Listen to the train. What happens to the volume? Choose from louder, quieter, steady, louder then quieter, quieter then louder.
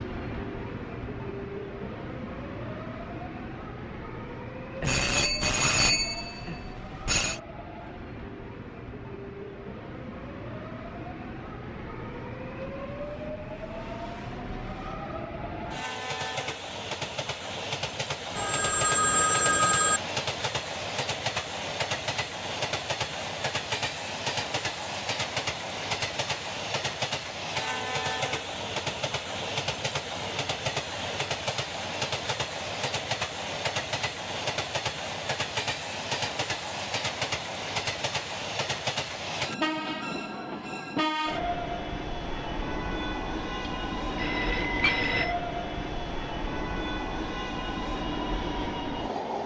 louder.